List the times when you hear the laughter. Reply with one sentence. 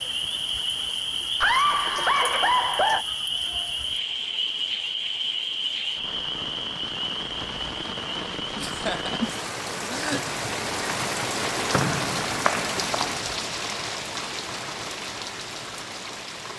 The laughter can be heard from 1.4 to 3.0 s and from 8.6 to 10.3 s.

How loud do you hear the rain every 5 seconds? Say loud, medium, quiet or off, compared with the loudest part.
quiet, medium, loud, medium.